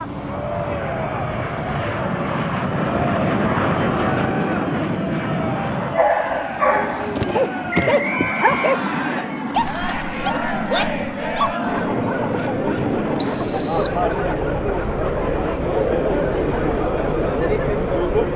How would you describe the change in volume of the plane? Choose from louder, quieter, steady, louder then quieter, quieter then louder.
quieter.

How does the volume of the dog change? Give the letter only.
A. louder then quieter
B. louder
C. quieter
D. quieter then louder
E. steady
C.